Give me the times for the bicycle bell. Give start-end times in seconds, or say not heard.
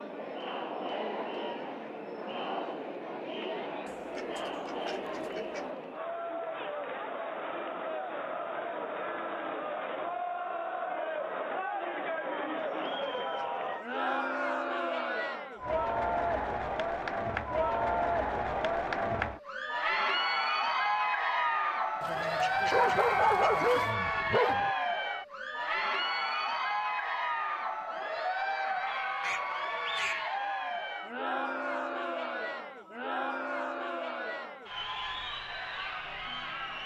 not heard.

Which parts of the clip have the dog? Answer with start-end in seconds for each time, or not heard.
22.7-24.8.